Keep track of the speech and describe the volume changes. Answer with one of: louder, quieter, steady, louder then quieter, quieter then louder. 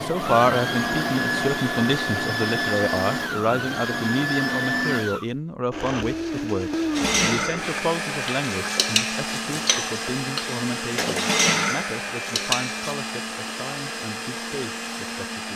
quieter.